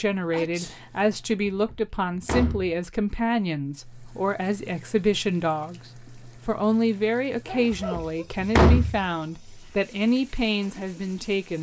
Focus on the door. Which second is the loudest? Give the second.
9 s.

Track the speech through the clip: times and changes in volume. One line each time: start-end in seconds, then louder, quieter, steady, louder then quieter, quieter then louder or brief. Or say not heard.
0.0-11.5 steady.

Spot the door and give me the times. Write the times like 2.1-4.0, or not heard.
1.4-2.8, 7.7-9.0.